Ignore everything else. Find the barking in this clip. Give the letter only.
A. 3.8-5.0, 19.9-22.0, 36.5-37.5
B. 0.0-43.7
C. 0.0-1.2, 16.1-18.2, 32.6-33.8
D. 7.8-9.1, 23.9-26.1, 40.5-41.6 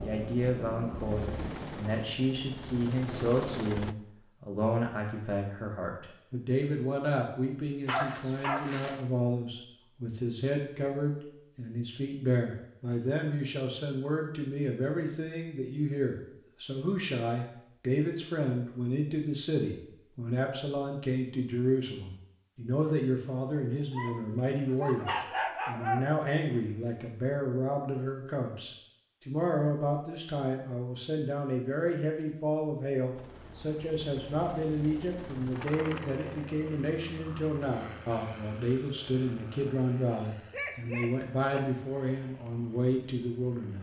D.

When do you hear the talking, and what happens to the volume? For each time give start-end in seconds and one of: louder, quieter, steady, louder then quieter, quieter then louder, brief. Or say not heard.
0.0-43.7 steady.